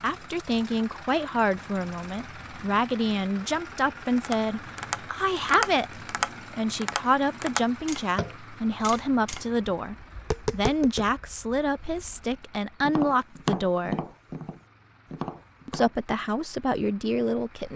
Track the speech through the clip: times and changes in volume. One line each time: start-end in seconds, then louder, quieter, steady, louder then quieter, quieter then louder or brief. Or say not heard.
0.0-14.0 steady
15.7-17.7 brief.